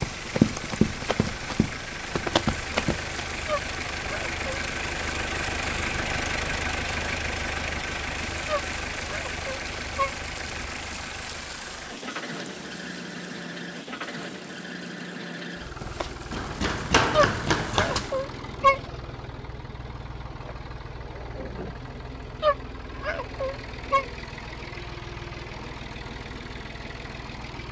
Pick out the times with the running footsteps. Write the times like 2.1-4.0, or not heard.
0.0-3.1, 15.8-18.1.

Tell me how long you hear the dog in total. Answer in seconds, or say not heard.
6 s.